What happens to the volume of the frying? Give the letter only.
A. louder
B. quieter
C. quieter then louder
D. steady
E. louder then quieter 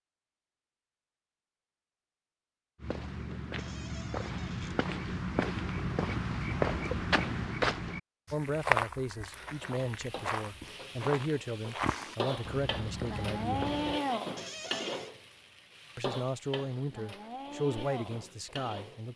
E.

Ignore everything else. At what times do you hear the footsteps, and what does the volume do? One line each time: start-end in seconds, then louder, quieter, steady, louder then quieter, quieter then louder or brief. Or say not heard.
2.8-14.0 louder then quieter.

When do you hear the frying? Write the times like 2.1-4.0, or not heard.
9.4-19.1.